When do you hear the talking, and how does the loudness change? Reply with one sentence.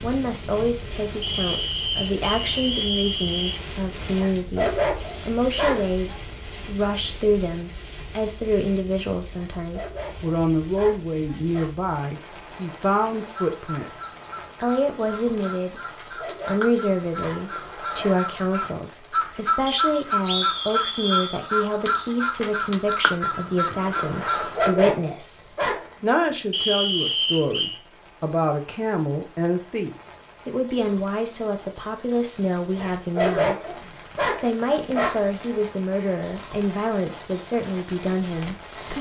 You can hear the talking from 0.0 to 13.8 s, at a steady volume; from 14.6 to 33.5 s, at a steady volume; and from 34.4 to 38.9 s, at a steady volume.